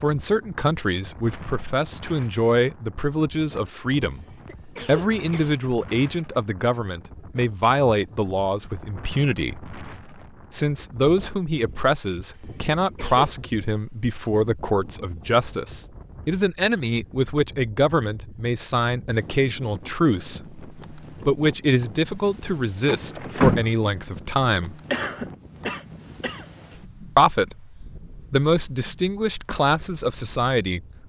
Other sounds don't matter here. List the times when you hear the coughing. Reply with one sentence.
You can hear the coughing from 4.1 to 5.6 s, from 12.3 to 13.3 s and from 24.9 to 26.4 s.